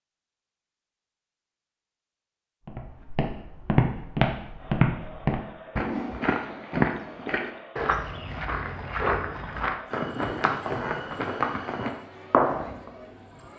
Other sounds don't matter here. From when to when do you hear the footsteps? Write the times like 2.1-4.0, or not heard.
2.6-12.9.